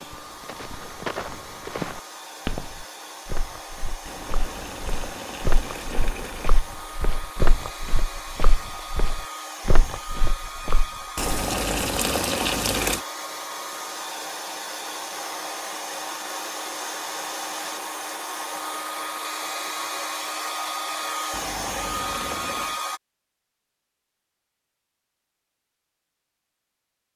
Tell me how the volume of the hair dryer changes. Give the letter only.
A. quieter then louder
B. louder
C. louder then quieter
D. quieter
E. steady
B.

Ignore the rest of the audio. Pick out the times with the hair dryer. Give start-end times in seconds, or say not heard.
0.0-23.0.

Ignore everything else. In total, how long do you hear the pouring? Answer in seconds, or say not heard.
6 s.